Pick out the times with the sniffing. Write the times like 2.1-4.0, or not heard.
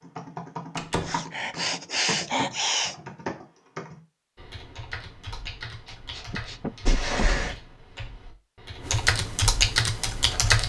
1.0-3.0, 5.5-7.2.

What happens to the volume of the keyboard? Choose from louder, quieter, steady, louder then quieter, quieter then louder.
quieter then louder.